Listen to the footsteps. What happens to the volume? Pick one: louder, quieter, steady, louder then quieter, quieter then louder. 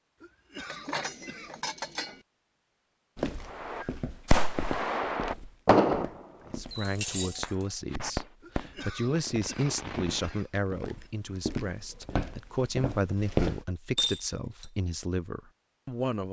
quieter then louder.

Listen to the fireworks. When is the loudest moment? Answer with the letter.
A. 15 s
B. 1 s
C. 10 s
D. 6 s
D.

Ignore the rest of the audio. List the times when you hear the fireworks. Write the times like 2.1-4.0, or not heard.
3.5-10.4.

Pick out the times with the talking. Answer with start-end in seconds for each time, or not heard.
6.5-16.2.